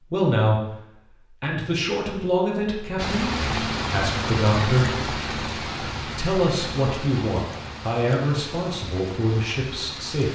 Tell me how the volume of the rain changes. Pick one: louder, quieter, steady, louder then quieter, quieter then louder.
quieter.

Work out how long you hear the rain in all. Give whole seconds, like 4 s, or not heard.
7 s.